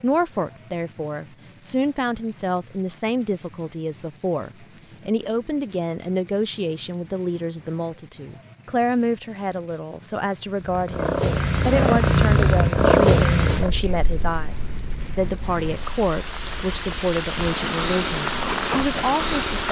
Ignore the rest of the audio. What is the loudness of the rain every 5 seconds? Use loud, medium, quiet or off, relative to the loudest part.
quiet, quiet, quiet, loud.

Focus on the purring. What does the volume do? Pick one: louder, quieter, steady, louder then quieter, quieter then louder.
quieter then louder.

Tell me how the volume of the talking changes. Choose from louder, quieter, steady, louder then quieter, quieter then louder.
steady.